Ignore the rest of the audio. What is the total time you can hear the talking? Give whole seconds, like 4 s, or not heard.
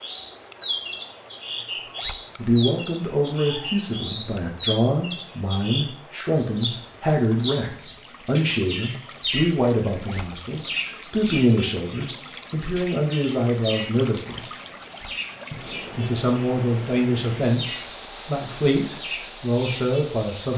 17 s.